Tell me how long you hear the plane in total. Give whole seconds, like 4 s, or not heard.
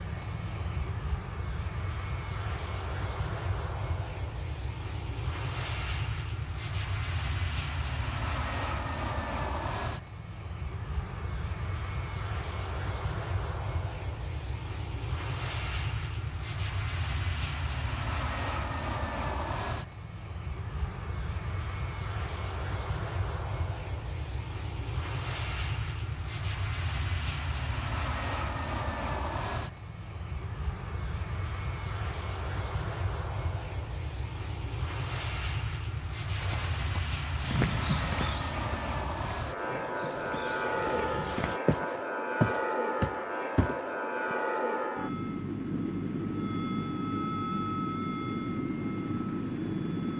50 s.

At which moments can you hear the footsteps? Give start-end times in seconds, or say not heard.
36.4-44.4.